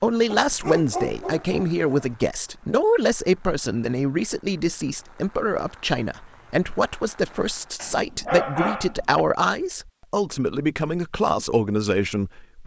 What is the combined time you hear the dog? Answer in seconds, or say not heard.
3 s.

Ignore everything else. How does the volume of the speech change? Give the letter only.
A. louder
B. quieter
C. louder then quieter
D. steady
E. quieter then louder
D.